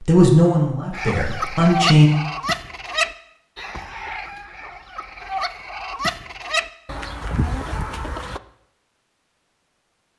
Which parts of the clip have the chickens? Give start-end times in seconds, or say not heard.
0.9-8.4.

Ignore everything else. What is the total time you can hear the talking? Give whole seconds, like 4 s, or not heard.
2 s.